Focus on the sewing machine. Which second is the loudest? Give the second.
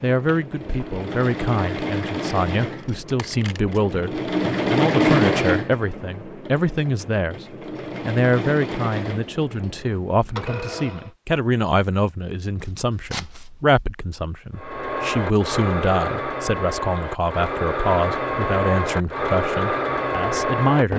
5 s.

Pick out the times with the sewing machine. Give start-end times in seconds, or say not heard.
0.0-11.1, 14.6-20.9.